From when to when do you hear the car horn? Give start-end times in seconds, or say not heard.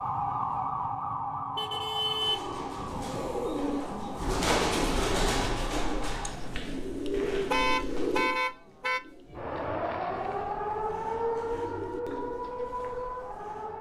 1.6-3.1, 7.5-9.0.